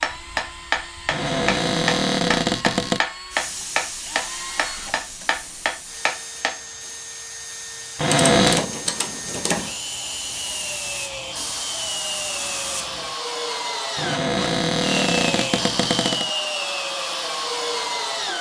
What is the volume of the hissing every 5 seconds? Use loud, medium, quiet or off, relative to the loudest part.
loud, medium, loud, off.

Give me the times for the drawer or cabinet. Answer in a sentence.
You can hear the drawer or cabinet from 1.1 to 3.0 s, from 8.0 to 8.7 s and from 13.9 to 16.3 s.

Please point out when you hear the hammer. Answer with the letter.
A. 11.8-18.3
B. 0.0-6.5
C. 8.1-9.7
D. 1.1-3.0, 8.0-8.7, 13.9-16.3
B.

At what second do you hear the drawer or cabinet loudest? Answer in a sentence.
The volume of the drawer or cabinet peaks at 8 seconds.